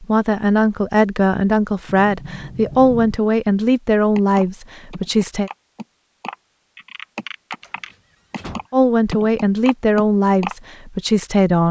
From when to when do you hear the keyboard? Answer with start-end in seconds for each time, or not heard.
4.2-10.6.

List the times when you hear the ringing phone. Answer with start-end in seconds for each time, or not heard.
not heard.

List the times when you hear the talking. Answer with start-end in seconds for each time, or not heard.
0.0-5.5, 8.7-11.6.